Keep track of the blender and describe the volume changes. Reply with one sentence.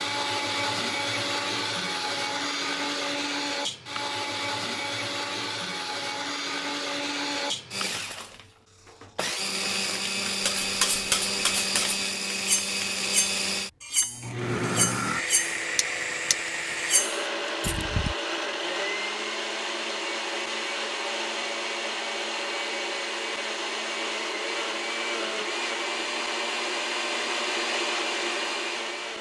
The volume of the blender stays about the same.